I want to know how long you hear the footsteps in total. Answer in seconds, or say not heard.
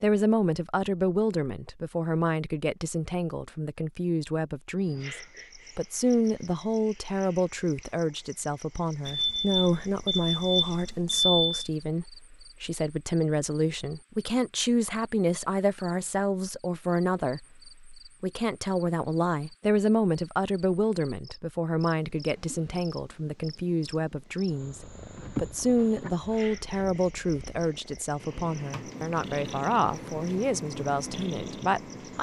not heard.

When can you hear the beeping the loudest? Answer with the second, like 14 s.
11 s.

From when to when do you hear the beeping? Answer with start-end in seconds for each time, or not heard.
9.1-11.7.